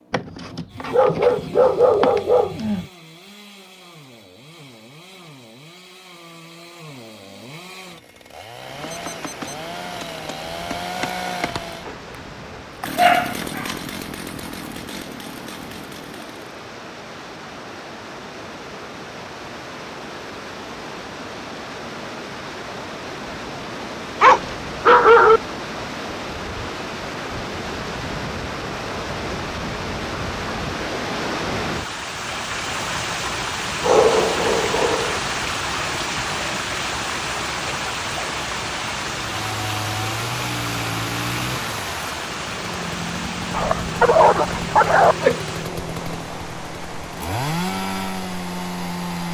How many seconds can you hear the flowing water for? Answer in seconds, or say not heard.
41 s.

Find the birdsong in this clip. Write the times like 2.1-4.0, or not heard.
not heard.